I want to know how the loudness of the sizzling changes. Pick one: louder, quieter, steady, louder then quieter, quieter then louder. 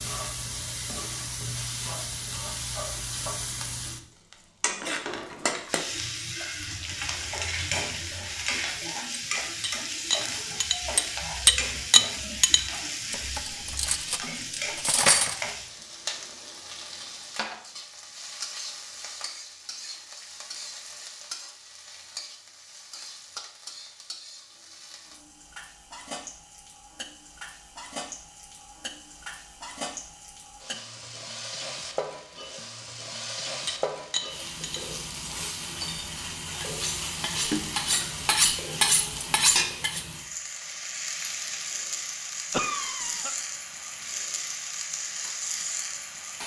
quieter then louder.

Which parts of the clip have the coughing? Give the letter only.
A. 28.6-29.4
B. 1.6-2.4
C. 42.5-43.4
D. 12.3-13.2
C.